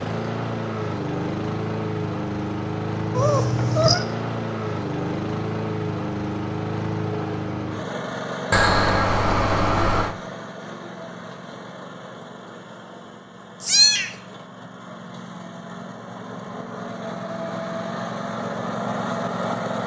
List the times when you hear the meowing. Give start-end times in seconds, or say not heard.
3.1-4.0, 8.5-10.2, 13.6-14.2.